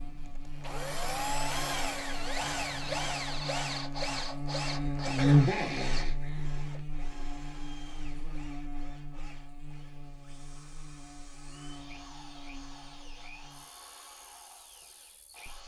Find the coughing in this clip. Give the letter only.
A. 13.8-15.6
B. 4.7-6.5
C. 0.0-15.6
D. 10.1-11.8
B.